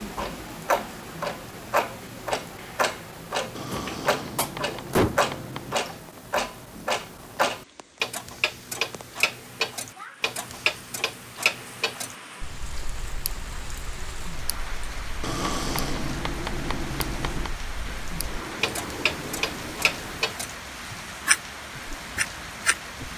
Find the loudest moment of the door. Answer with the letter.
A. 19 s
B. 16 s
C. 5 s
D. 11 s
C.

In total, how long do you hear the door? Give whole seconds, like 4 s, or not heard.
4 s.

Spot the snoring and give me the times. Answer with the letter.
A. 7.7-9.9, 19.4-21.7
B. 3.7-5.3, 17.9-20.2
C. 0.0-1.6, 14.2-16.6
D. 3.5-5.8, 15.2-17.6
D.